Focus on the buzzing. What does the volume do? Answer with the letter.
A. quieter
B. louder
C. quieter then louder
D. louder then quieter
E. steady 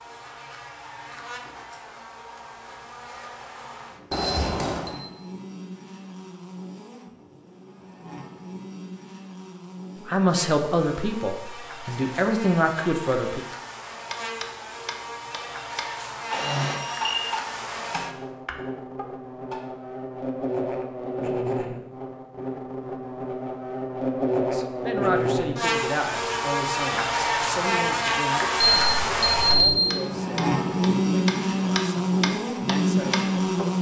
B.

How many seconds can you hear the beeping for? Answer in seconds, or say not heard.
3 s.